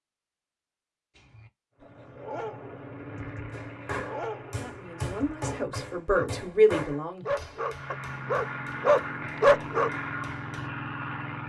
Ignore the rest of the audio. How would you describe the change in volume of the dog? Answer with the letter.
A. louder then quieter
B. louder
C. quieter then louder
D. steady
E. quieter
B.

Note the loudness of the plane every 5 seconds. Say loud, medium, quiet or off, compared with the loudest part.
medium, loud, loud.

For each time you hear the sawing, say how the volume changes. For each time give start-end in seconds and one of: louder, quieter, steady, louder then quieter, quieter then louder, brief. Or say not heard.
not heard.